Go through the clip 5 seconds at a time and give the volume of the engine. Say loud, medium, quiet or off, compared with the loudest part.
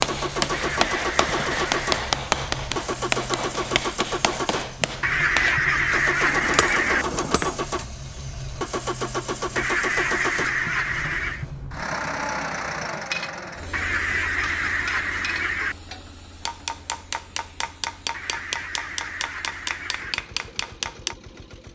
loud, loud, loud, quiet, quiet.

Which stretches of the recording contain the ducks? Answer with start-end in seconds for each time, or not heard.
0.5-2.0, 5.0-7.0, 9.6-11.4, 13.7-15.8, 18.1-20.1.